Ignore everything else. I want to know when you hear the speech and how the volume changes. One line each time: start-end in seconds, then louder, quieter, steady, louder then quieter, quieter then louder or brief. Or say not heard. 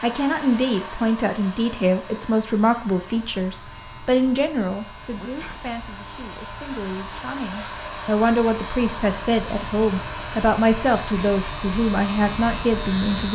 0.0-13.2 quieter then louder.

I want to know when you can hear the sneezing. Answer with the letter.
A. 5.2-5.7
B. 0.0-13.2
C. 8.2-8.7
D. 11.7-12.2
A.